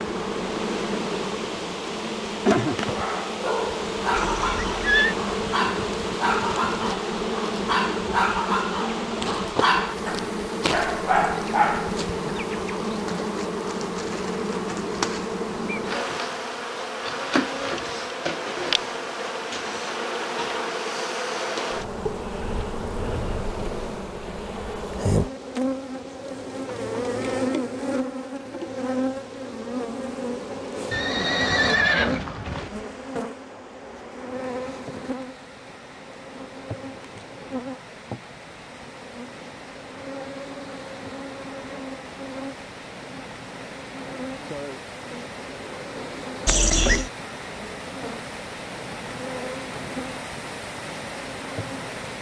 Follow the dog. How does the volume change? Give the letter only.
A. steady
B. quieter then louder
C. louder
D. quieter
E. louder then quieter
A.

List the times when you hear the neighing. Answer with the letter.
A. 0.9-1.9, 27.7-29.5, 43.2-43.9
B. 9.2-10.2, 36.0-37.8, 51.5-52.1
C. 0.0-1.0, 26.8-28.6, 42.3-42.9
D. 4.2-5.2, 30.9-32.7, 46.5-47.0
D.